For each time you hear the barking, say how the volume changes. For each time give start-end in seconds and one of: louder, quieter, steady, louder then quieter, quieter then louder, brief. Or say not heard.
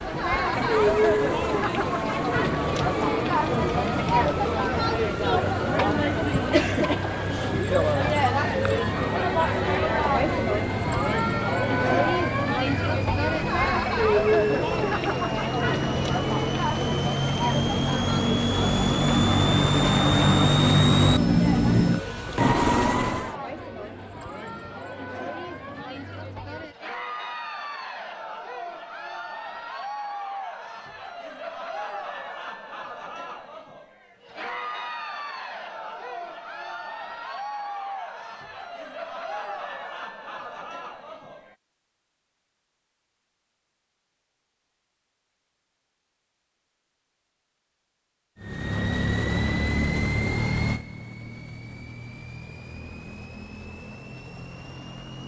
not heard.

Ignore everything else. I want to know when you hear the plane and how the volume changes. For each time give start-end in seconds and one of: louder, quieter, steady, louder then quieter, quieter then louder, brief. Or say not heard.
0.0-23.4 louder
48.4-55.2 quieter.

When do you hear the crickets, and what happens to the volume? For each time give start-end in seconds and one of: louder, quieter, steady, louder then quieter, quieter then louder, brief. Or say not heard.
not heard.